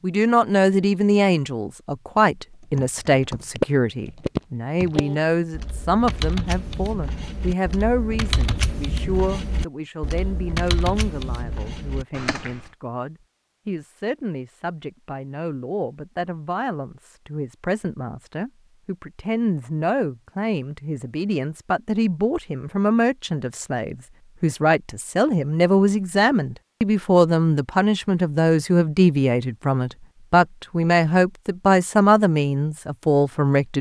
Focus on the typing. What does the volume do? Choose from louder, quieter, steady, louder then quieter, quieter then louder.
quieter.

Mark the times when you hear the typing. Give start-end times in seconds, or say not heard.
2.8-12.7.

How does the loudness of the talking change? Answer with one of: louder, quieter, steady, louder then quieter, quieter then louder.
quieter then louder.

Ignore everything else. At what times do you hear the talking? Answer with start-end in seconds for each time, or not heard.
0.0-33.7.